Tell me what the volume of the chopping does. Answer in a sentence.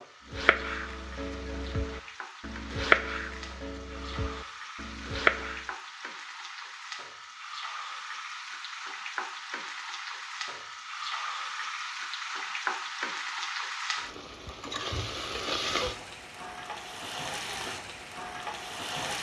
The volume of the chopping goes up, then down.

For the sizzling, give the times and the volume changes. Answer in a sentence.
You can hear the sizzling from 0.0 to 19.1 s, getting louder.